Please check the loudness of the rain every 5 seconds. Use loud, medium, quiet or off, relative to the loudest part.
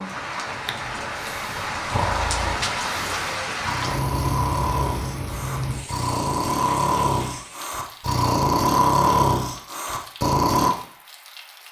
loud, medium, quiet.